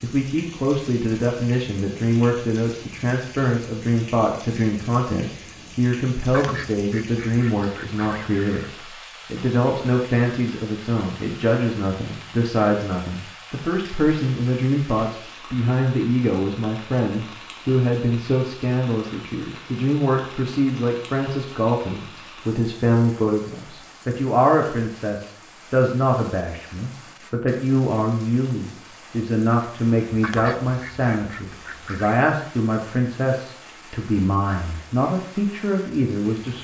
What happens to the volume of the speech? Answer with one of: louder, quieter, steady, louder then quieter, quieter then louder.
steady.